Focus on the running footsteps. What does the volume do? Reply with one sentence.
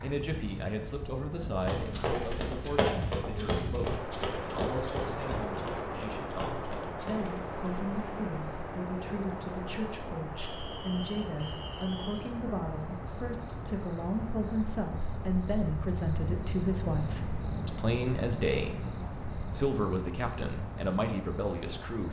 The loudness of the running footsteps goes down.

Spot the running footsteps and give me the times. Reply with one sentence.
The running footsteps can be heard from 1.6 to 7.4 s.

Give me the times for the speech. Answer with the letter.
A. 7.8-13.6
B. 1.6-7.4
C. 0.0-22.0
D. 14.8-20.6
C.